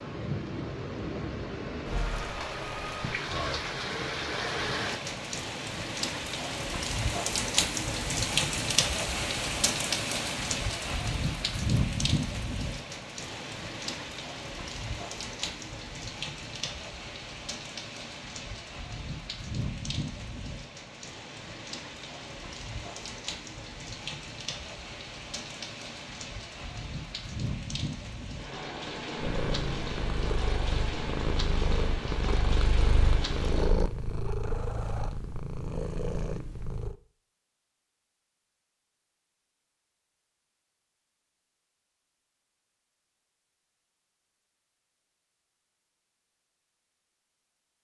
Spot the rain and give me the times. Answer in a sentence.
The rain can be heard from 0.0 to 33.9 s.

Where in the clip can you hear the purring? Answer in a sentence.
The purring can be heard from 29.1 to 37.0 s.